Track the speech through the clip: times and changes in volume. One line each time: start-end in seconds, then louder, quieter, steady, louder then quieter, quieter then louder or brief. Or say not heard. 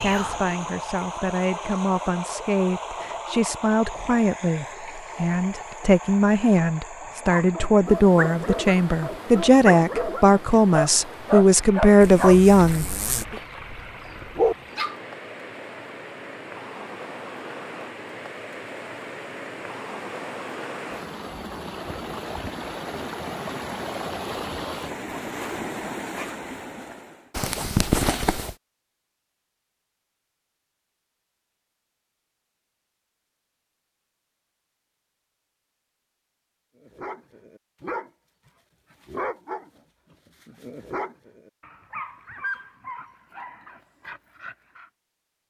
0.0-12.8 louder.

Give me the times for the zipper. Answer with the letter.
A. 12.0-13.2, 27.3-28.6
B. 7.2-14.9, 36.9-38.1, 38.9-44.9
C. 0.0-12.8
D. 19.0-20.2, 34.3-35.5
A.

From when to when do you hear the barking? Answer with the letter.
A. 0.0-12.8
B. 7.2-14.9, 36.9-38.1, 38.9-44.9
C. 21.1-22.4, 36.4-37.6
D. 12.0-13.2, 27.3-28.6
B.